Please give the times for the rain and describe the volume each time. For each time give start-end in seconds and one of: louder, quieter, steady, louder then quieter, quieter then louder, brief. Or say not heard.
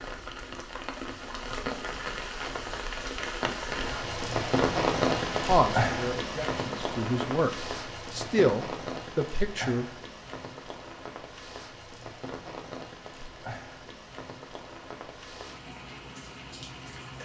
0.0-17.2 louder then quieter.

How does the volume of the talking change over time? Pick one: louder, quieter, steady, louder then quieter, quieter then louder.
louder.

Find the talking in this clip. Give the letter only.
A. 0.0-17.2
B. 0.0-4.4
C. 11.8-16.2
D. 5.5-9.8
D.